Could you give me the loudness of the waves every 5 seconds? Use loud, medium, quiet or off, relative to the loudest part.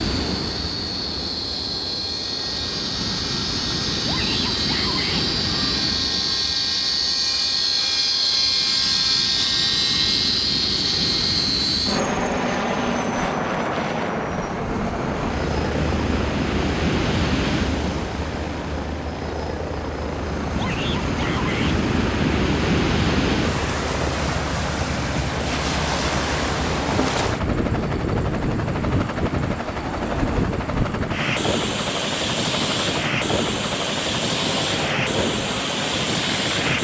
medium, medium, medium, loud, loud, loud, loud, loud.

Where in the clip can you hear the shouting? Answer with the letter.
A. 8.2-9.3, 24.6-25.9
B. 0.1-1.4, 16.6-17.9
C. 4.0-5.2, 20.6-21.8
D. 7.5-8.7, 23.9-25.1
C.